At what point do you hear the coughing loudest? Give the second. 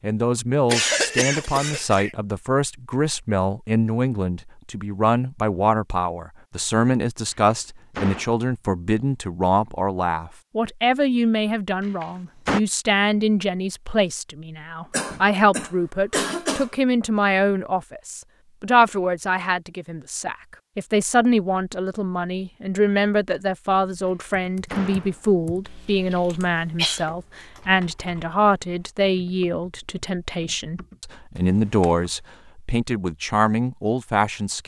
1 s.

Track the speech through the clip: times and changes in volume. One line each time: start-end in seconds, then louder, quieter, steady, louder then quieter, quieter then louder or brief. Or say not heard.
0.0-34.6 steady.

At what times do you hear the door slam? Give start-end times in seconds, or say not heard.
7.3-8.3, 11.8-12.6, 24.1-25.2.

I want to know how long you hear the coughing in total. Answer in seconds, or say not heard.
5 s.